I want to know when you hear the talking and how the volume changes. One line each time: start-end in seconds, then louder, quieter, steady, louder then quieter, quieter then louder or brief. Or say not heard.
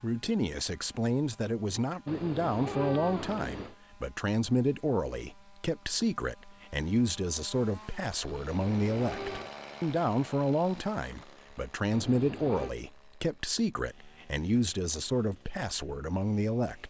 0.0-16.8 steady.